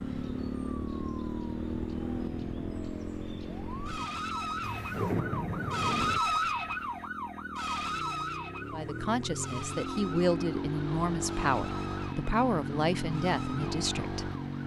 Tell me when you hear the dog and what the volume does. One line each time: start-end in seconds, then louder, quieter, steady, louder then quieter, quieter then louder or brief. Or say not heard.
not heard.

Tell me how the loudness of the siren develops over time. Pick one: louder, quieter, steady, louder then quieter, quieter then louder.
louder then quieter.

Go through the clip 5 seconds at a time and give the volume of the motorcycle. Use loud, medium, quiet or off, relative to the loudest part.
loud, medium, loud.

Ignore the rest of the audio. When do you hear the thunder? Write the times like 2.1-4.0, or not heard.
4.6-6.2.